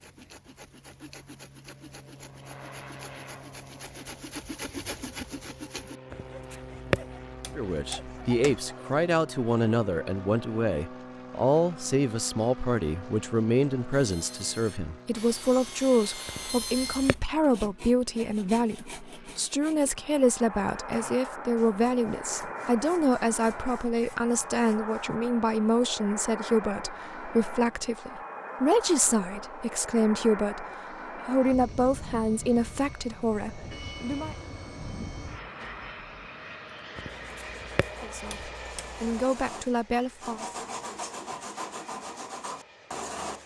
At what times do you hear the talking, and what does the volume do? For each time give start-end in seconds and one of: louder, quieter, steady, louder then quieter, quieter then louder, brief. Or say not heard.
7.5-34.4 steady
38.0-40.5 brief.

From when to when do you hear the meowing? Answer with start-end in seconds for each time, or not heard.
6.1-8.6, 16.2-17.2, 37.0-39.2.